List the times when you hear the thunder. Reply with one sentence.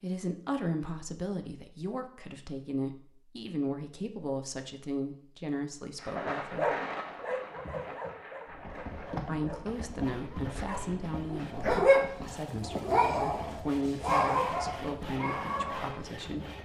The thunder can be heard from 6.0 to 9.2 s.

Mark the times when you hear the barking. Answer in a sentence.
The barking can be heard from 6.4 to 16.0 s.